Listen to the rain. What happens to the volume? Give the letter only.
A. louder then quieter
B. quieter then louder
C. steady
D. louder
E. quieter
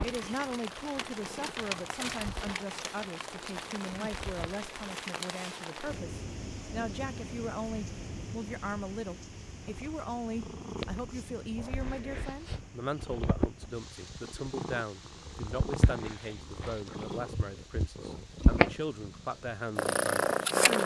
E.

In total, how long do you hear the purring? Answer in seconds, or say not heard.
16 s.